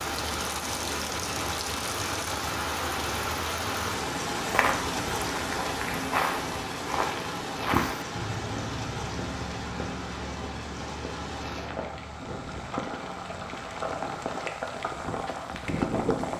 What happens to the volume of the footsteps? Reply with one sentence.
The loudness of the footsteps goes down.